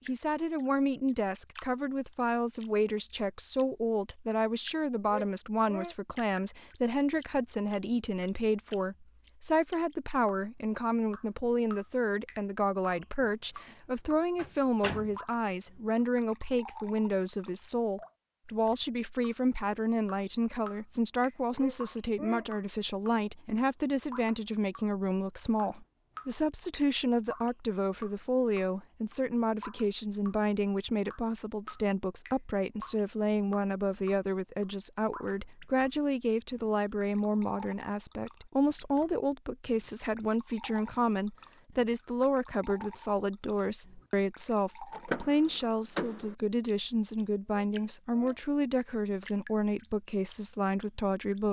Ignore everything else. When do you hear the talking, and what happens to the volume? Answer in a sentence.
The talking can be heard from 0.1 to 51.4 s, at a steady volume.